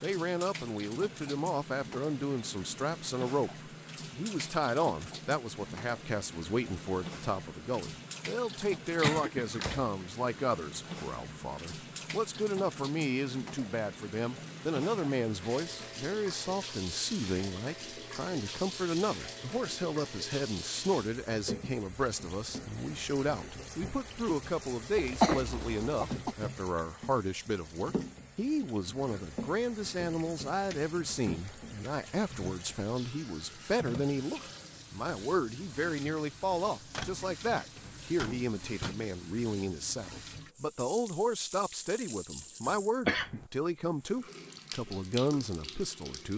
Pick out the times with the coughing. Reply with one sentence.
The coughing can be heard from 9.0 to 9.8 s, from 24.9 to 26.4 s and from 43.0 to 43.5 s.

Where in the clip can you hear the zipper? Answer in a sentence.
You can't hear the zipper here.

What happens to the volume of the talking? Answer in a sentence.
The loudness of the talking stays about the same.